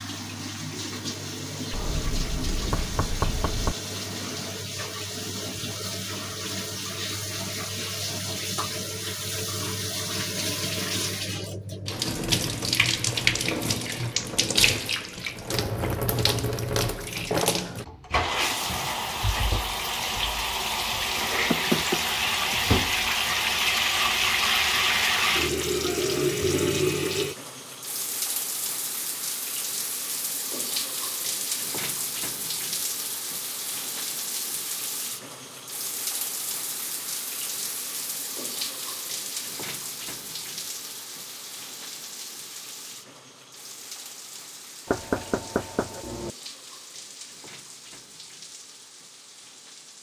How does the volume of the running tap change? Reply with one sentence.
The loudness of the running tap goes up, then down.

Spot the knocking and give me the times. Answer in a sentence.
You can hear the knocking from 1.7 to 3.8 s, from 21.5 to 22.1 s and from 44.9 to 46.3 s.